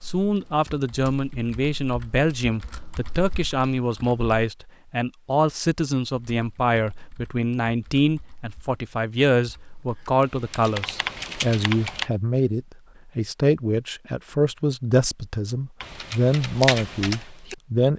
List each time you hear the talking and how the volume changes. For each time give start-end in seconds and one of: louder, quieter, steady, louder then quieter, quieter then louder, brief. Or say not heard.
0.0-17.9 steady.